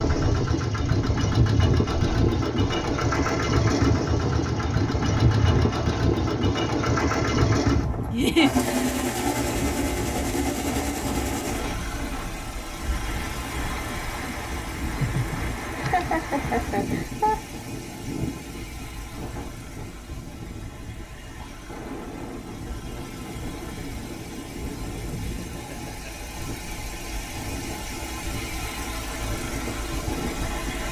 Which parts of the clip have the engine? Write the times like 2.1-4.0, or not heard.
0.0-30.8.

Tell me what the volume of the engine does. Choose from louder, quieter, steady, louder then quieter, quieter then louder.
quieter then louder.